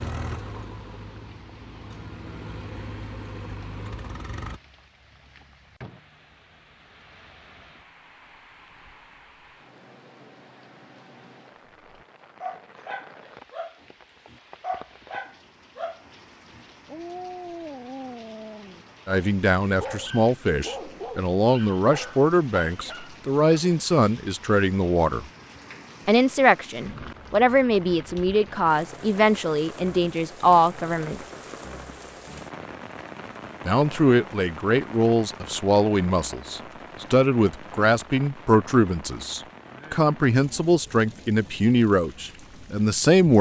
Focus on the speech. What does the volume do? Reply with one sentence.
The loudness of the speech stays about the same.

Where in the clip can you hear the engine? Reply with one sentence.
You can hear the engine from 0.0 to 4.6 s.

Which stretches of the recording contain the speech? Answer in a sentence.
You can hear the speech from 19.1 to 25.2 s, from 26.1 to 31.2 s and from 33.6 to 43.3 s.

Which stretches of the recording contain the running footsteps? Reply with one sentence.
The running footsteps can't be heard in this clip.